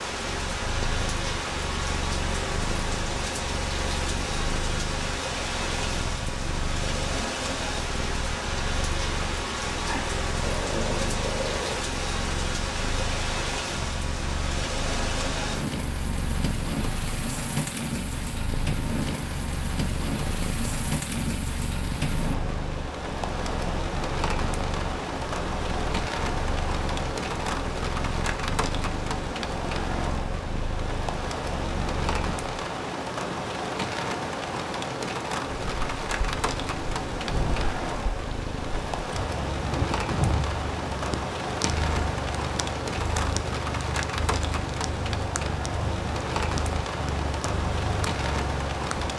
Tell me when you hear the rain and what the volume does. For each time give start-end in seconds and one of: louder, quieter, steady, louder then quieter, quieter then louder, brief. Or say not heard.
0.0-49.1 steady.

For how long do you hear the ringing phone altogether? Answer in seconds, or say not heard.
2 s.